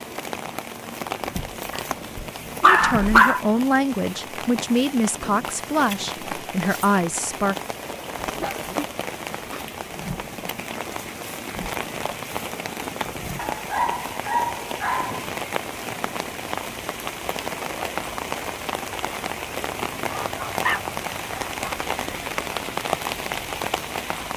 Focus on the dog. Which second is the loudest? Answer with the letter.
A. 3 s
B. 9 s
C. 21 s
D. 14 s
A.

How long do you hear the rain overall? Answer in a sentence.
The rain can be heard for 24 seconds in total.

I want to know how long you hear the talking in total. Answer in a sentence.
The talking can be heard for 5 seconds in total.